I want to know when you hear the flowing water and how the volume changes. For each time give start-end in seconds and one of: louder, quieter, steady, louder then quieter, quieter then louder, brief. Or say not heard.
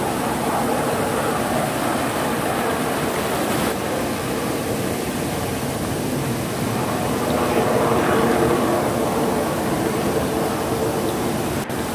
0.0-11.8 steady.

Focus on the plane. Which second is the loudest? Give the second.
8 s.